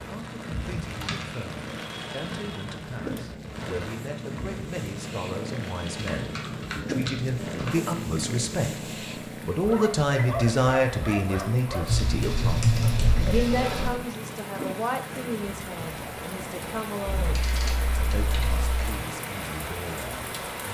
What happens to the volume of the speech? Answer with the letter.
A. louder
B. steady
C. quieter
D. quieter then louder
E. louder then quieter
E.